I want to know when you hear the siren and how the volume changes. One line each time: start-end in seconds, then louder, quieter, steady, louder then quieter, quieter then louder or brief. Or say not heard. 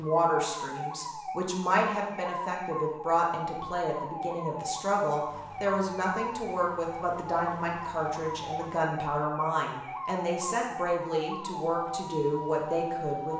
0.0-13.3 steady.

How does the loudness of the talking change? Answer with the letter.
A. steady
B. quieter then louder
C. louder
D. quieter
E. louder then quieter
A.